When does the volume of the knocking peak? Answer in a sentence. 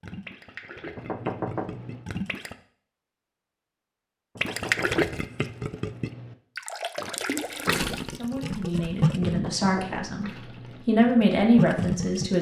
The volume of the knocking peaks at 1 second.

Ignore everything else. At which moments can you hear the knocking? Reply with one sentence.
The knocking can be heard from 0.9 to 2.1 s, from 4.3 to 6.3 s and from 9.3 to 10.9 s.